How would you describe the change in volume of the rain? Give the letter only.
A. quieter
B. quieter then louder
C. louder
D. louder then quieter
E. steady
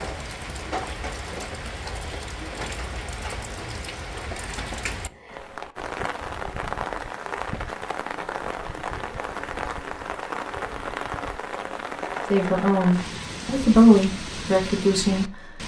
E.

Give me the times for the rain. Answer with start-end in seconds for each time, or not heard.
0.0-15.6.